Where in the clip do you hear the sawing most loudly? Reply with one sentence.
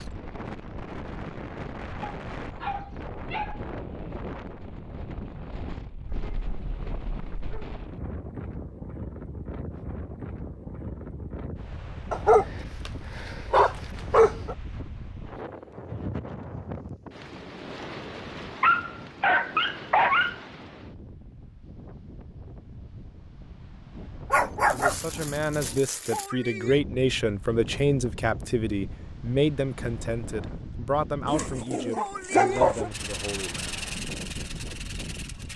The loudest moment of the sawing is at 34 seconds.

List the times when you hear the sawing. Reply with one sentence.
The sawing can be heard from 32.9 to 35.5 s.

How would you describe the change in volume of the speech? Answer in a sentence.
The volume of the speech goes down.